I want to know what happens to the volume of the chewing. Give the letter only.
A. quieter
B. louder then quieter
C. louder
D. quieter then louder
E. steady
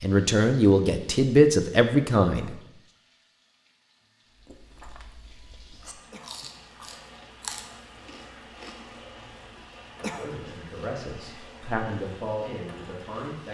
B.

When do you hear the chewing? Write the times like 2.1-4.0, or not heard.
4.2-9.0.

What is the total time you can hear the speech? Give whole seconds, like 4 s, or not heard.
6 s.